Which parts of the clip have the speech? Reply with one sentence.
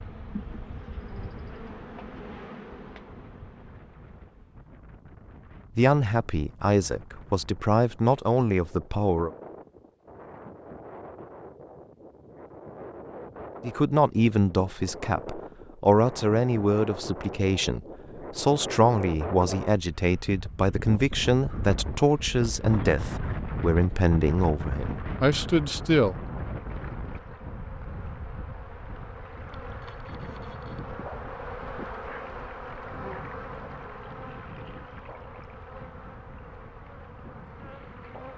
The speech can be heard from 5.8 to 9.3 s and from 13.6 to 26.1 s.